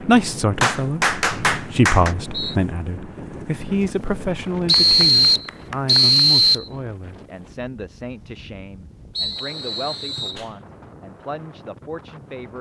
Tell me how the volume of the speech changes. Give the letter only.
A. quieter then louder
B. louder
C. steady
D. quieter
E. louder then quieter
D.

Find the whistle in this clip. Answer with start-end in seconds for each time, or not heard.
1.3-2.5, 4.7-6.7, 9.2-10.4.